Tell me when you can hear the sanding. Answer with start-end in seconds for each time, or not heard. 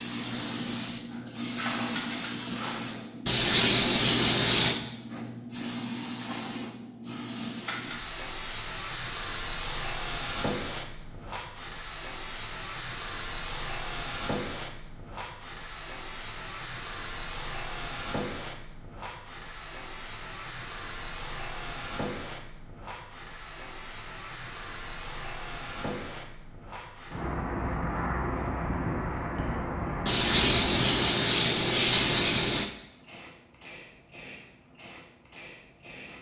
3.2-4.8, 30.1-32.6.